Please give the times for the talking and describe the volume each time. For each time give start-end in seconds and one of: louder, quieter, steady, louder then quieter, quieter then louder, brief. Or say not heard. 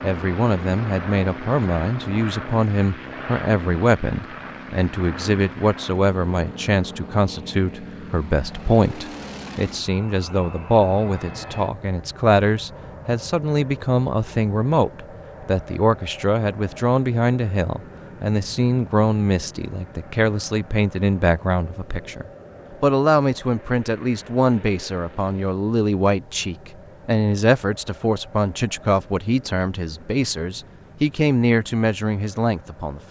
0.0-33.0 steady.